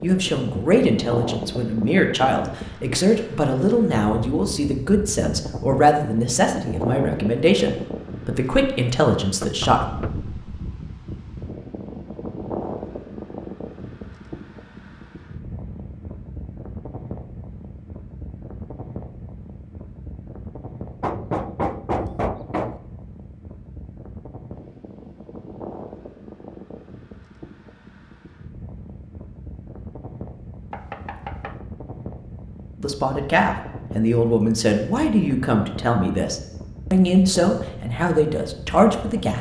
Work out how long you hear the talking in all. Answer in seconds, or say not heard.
16 s.